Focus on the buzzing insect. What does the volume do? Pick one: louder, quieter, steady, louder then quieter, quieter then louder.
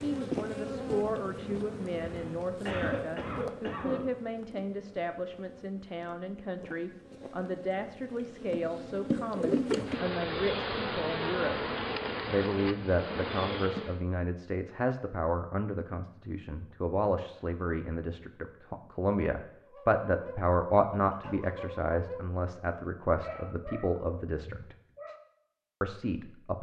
quieter then louder.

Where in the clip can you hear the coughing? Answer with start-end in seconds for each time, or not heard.
2.0-4.0.